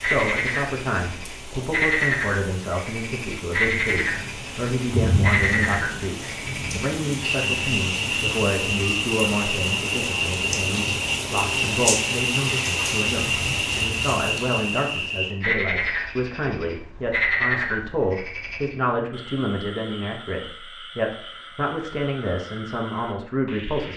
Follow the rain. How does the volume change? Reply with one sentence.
The volume of the rain goes up.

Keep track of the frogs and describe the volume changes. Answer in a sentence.
The loudness of the frogs goes down.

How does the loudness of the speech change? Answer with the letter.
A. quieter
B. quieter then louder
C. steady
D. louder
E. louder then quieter
C.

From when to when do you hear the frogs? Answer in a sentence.
You can hear the frogs from 0.0 to 23.9 s.